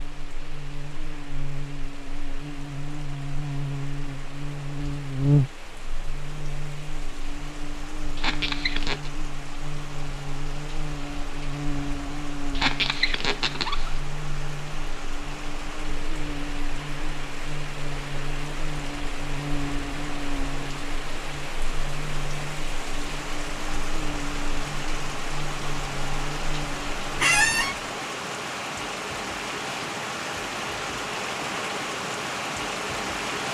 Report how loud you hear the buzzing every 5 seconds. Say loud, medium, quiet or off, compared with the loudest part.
medium, loud, medium, medium, medium, medium, off.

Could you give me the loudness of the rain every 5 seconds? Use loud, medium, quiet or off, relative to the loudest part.
quiet, quiet, medium, medium, medium, loud, loud.